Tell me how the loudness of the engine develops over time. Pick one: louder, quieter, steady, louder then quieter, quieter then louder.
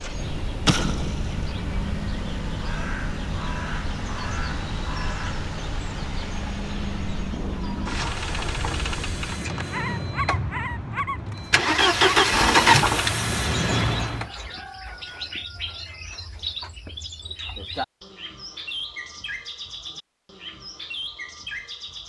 louder.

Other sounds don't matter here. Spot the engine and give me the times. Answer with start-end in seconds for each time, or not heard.
0.0-14.3.